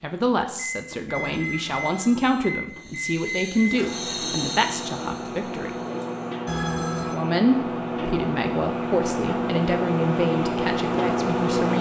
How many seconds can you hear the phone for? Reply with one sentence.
You can hear the phone for 2 seconds altogether.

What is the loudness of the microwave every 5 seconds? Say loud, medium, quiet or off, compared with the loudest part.
medium, medium, loud.